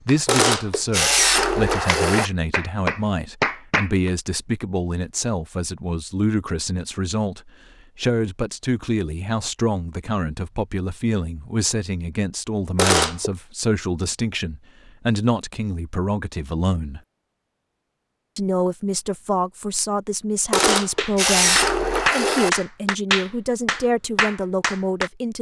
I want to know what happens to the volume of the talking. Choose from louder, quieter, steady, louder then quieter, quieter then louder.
steady.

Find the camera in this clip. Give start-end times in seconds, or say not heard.
0.2-2.3, 12.8-13.3, 20.5-22.5.